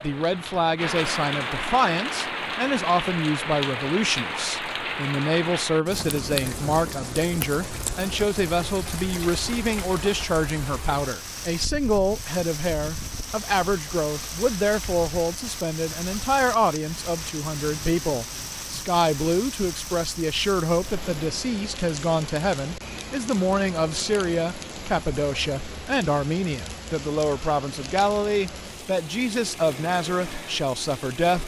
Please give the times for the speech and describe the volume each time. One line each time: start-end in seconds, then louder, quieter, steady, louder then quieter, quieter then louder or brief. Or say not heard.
0.0-31.4 steady.